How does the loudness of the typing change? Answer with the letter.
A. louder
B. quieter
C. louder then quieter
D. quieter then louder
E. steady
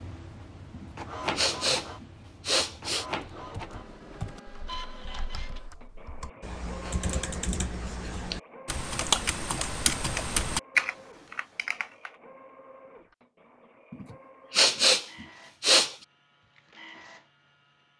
A.